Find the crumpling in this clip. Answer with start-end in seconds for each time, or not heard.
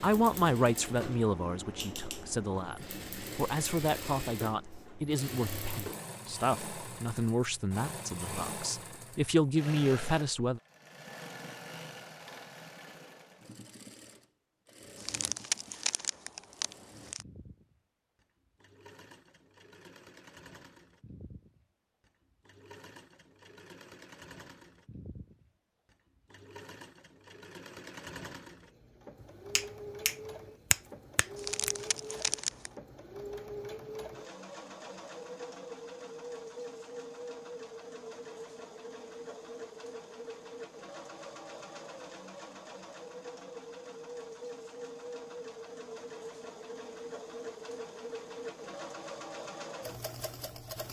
14.9-17.2, 31.4-32.7.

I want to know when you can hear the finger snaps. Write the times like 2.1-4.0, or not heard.
29.6-31.7.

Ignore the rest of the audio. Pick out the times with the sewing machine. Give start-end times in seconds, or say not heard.
0.0-50.8.